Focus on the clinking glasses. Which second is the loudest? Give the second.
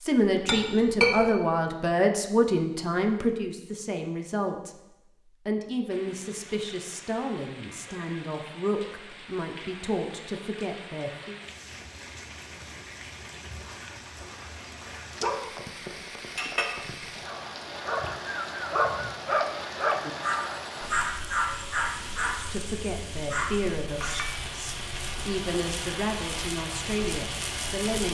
1 s.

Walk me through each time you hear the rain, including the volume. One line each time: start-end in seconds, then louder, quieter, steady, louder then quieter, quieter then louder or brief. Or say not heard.
5.8-28.1 louder.